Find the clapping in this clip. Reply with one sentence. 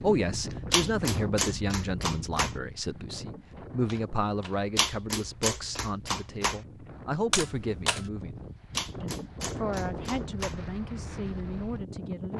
The clapping can be heard from 0.7 to 2.5 s, from 4.8 to 6.6 s and from 8.7 to 10.6 s.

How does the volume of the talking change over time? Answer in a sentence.
The loudness of the talking goes down.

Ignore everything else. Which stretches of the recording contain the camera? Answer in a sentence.
You can hear the camera from 3.9 to 4.7 s and from 7.3 to 8.1 s.